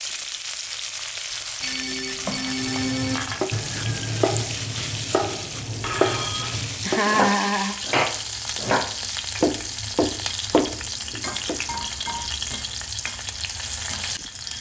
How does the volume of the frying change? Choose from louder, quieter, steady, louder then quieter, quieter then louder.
steady.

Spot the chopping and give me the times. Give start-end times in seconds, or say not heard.
2.5-11.6.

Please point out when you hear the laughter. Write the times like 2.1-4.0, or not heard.
6.8-7.8.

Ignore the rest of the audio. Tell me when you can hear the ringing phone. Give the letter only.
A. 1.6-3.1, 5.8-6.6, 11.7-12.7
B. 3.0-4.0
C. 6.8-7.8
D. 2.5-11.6
A.